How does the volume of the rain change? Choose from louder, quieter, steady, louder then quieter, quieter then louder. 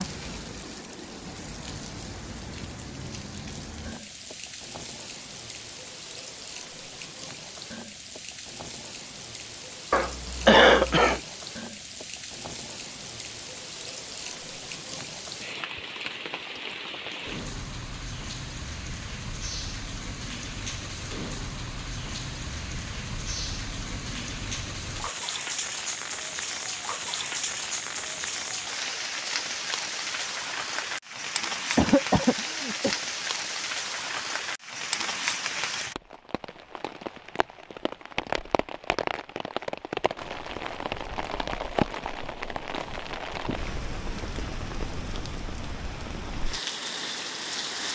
louder.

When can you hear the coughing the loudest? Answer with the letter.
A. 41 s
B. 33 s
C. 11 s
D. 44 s
C.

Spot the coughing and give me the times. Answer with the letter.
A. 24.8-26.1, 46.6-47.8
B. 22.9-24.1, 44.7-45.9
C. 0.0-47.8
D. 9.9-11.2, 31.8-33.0
D.